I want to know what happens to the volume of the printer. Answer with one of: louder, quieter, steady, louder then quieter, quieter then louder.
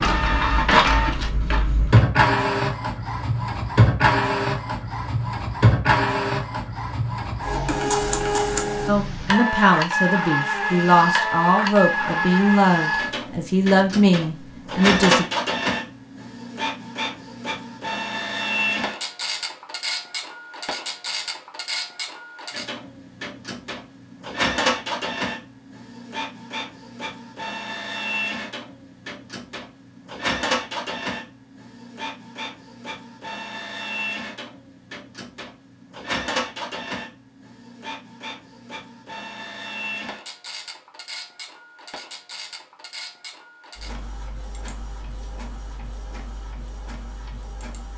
quieter.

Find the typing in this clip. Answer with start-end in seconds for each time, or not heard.
not heard.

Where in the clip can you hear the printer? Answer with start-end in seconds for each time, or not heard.
0.0-47.9.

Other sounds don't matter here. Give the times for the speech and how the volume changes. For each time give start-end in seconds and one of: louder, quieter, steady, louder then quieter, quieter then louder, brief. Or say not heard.
8.8-15.2 steady.